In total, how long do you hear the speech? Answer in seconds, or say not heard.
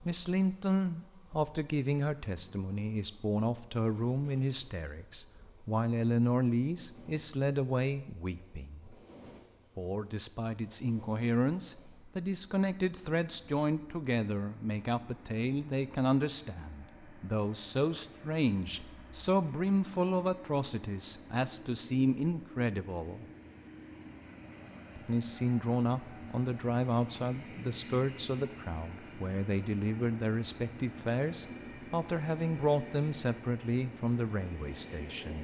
33 s.